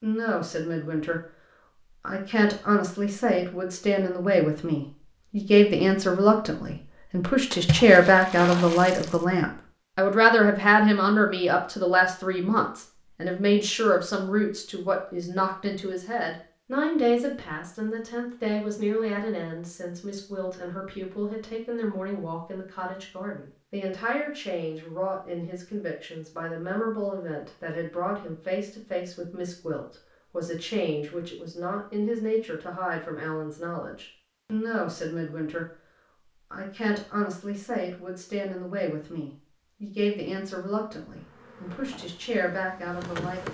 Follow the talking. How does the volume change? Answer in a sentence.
The loudness of the talking goes down.